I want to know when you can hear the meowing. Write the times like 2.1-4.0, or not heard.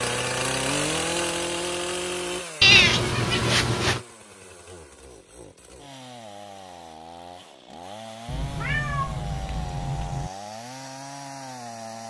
2.6-4.0, 8.2-10.3.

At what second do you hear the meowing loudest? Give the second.
3 s.